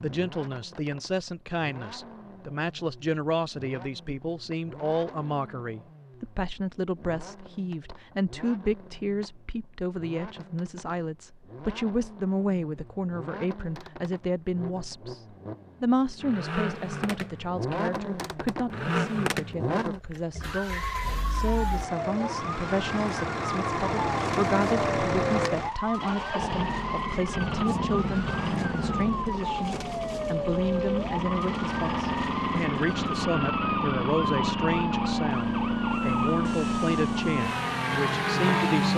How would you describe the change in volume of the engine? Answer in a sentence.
The loudness of the engine goes up.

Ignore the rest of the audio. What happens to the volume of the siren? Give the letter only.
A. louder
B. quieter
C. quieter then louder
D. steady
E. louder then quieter
D.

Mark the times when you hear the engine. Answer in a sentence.
The engine can be heard from 0.0 to 38.9 s.